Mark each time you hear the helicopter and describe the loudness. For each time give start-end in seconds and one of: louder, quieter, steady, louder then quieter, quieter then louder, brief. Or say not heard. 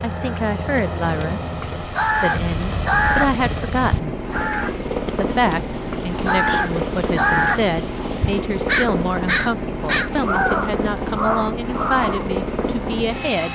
0.0-13.5 steady.